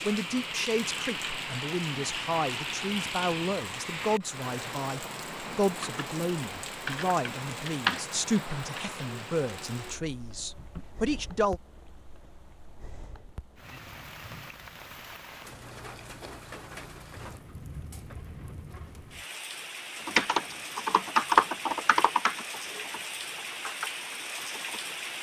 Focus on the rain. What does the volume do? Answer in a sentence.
The volume of the rain goes down, then up.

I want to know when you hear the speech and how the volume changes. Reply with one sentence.
You can hear the speech from 0.1 to 11.6 s, at a steady volume.